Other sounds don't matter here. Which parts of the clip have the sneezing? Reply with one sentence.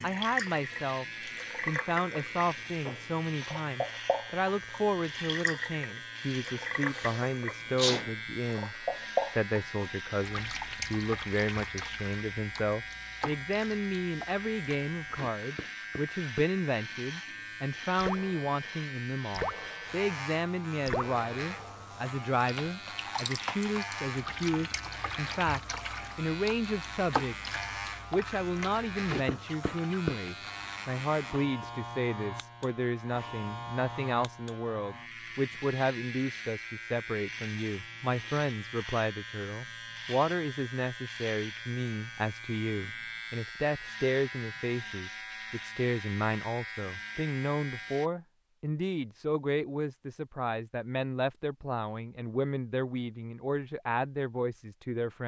You can hear the sneezing from 6.9 to 8.1 s.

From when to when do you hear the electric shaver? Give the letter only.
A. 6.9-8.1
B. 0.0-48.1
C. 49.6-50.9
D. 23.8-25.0
B.